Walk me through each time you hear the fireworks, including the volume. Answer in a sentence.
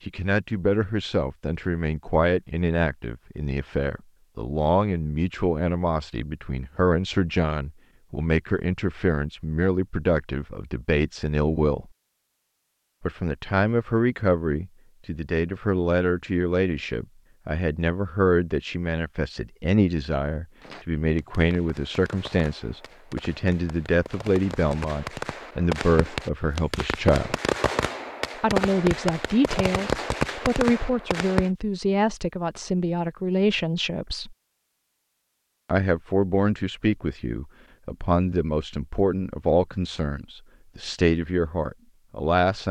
The fireworks can be heard from 20.6 to 31.5 s, getting louder.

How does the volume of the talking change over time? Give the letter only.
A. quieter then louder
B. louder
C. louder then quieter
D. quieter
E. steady
E.